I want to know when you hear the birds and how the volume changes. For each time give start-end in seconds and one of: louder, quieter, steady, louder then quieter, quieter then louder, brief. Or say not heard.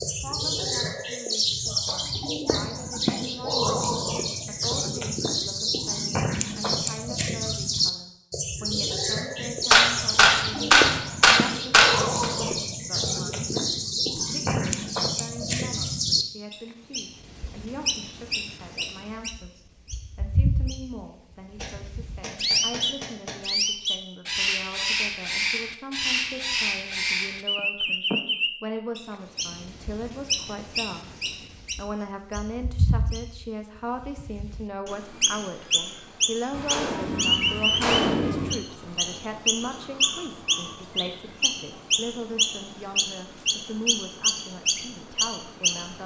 0.0-46.0 steady.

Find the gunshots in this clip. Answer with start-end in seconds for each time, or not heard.
9.7-12.2, 21.6-23.4, 36.5-38.5.